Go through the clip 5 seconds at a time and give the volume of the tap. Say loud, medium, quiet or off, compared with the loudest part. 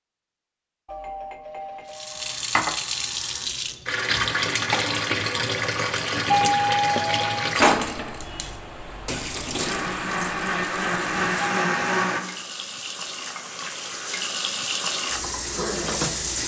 loud, loud, medium, loud.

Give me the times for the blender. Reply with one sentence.
You can hear the blender from 9.6 to 12.2 s.